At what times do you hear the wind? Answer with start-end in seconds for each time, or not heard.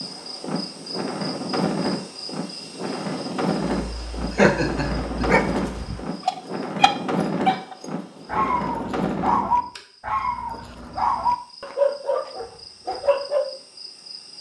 0.0-9.7.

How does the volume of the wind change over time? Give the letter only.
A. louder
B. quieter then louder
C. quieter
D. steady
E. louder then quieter
D.